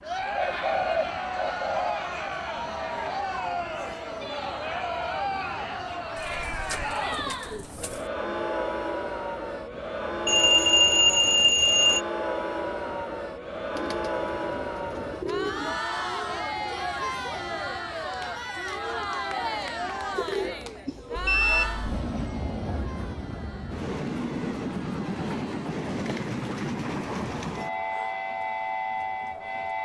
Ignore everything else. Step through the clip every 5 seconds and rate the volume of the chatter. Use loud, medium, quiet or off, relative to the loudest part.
loud, loud, loud, loud, medium, quiet.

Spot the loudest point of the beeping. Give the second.
11 s.